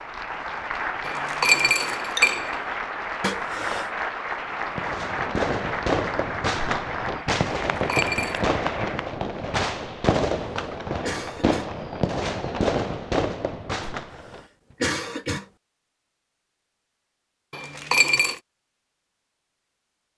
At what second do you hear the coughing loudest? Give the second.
15 s.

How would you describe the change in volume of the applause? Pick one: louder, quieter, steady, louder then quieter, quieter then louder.
steady.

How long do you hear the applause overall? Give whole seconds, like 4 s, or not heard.
9 s.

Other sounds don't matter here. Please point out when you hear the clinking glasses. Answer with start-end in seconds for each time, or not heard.
1.1-2.6, 7.8-8.4, 17.5-18.4.